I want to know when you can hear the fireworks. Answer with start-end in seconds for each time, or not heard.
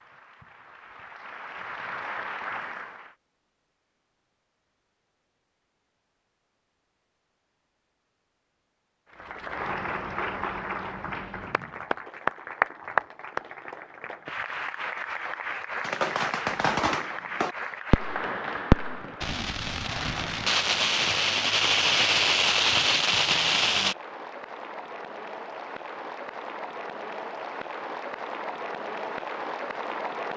15.8-23.9.